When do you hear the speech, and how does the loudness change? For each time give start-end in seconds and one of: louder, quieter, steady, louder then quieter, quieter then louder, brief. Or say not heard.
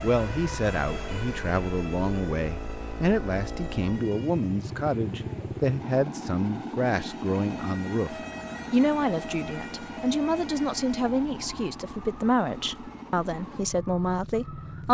0.0-14.8 steady.